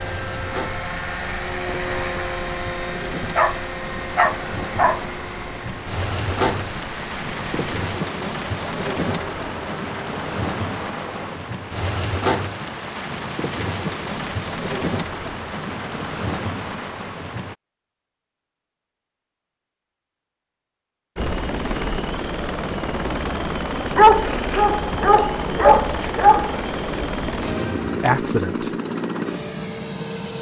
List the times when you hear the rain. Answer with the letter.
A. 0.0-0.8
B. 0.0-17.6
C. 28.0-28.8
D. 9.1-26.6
B.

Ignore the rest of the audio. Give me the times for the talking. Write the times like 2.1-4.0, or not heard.
28.0-28.8.